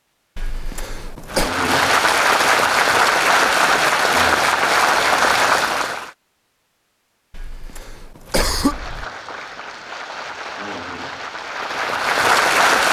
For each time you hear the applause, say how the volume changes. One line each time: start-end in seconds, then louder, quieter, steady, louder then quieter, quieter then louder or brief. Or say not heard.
1.2-6.1 steady
8.5-12.8 louder.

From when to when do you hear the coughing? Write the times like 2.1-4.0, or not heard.
0.3-1.5, 7.3-9.1.